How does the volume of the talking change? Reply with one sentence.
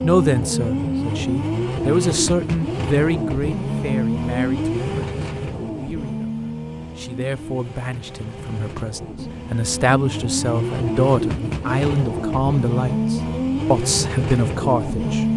The volume of the talking goes down, then up.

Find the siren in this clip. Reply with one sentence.
The siren can't be heard in this clip.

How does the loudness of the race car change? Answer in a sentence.
The loudness of the race car goes down, then up.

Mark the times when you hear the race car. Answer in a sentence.
You can hear the race car from 0.0 to 15.3 s.